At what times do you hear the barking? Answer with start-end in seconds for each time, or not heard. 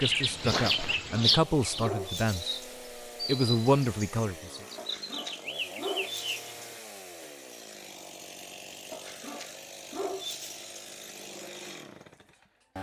0.8-2.6, 4.8-6.5, 8.9-10.8.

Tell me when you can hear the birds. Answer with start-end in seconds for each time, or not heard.
0.0-6.6.